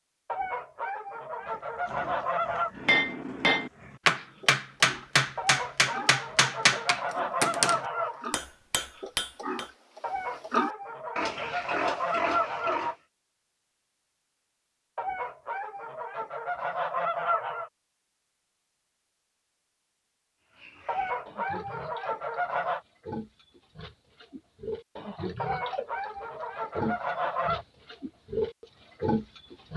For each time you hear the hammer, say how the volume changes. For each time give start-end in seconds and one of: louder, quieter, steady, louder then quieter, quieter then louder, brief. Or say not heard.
2.8-9.7 quieter.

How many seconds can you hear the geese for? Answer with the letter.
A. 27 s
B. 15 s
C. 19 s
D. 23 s
B.